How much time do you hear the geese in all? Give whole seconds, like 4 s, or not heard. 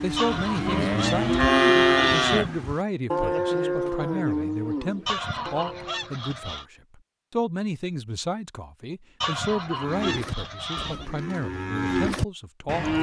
6 s.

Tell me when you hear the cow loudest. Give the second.
2 s.